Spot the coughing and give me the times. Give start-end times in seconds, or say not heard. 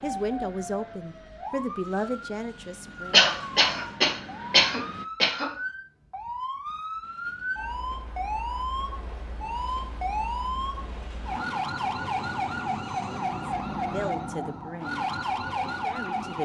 3.1-5.5.